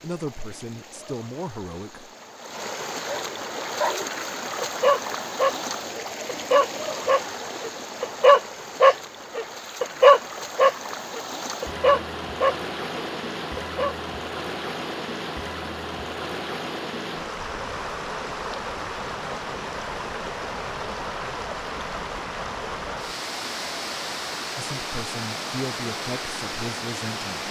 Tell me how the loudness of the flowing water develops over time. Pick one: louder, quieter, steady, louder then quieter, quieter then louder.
steady.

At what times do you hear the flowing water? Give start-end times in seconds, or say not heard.
0.0-27.4.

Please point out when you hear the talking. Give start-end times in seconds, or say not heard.
0.0-2.1, 24.6-27.4.